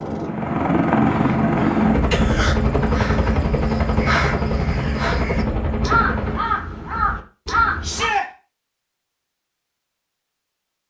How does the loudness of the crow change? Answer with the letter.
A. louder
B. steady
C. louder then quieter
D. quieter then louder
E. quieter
D.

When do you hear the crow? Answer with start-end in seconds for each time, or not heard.
1.0-8.2.